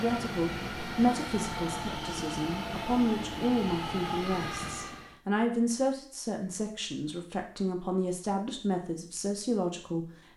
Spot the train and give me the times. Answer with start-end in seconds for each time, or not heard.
0.0-5.2.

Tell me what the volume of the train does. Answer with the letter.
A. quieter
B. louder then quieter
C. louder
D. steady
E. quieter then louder
D.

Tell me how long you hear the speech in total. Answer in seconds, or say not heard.
10 s.